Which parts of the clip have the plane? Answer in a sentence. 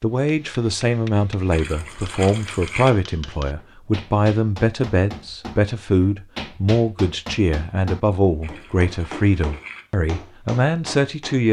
The plane can't be heard in this clip.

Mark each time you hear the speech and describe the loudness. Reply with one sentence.
The speech can be heard from 0.0 to 11.4 s, at a steady volume.